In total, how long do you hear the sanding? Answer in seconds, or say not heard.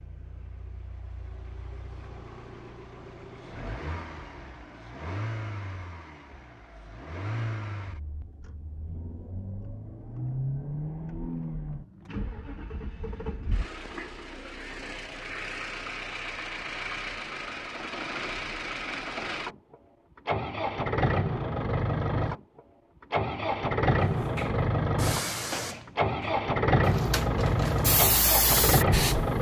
not heard.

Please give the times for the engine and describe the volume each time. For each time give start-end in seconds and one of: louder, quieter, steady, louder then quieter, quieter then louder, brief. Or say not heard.
0.0-29.3 louder.